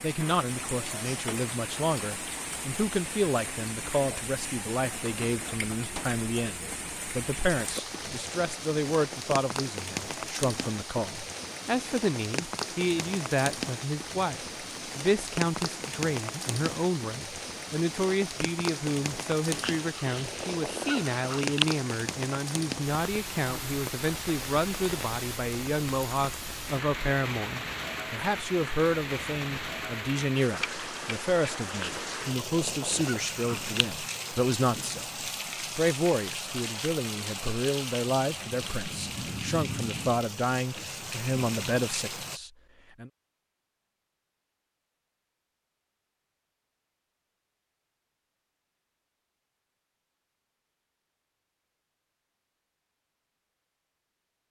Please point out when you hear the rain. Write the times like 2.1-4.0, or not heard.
0.0-42.4.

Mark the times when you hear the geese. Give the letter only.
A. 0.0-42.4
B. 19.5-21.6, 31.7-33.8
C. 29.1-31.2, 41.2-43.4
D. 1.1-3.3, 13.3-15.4
B.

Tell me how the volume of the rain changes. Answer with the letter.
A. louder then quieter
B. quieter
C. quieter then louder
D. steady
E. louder
D.